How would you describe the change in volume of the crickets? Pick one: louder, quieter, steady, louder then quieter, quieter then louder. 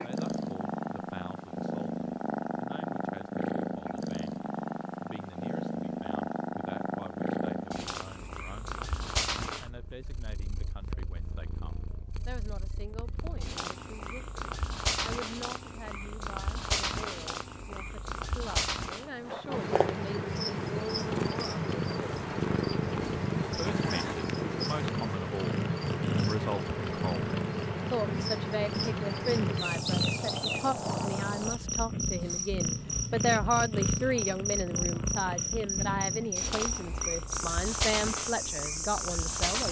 steady.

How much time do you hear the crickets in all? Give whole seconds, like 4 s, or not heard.
20 s.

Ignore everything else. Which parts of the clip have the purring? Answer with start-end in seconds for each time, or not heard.
0.0-39.6.